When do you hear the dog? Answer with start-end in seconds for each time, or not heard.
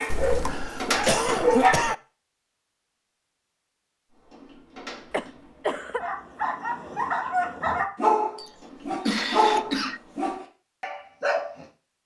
0.0-1.8, 6.0-11.6.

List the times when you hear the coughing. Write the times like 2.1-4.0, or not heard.
0.1-1.9, 5.1-6.0, 8.3-10.0.